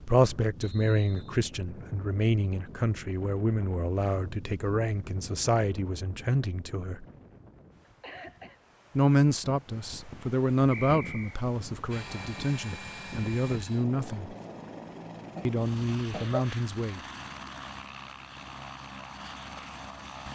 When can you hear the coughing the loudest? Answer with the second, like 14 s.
16 s.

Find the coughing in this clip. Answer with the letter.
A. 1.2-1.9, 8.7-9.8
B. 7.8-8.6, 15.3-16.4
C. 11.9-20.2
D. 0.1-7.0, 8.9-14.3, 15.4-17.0
B.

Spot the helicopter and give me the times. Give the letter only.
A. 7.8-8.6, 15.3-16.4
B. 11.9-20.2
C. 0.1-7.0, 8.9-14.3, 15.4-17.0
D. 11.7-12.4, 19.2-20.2
B.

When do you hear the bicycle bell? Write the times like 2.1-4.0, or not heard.
not heard.